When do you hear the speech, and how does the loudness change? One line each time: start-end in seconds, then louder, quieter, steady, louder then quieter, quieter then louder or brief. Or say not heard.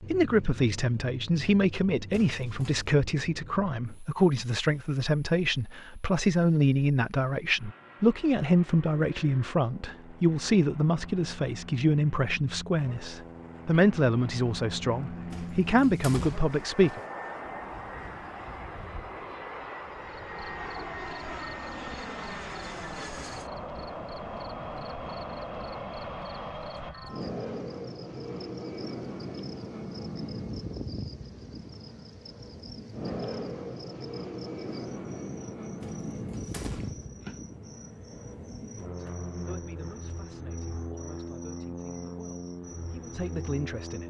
0.0-17.0 steady
38.8-44.0 quieter then louder.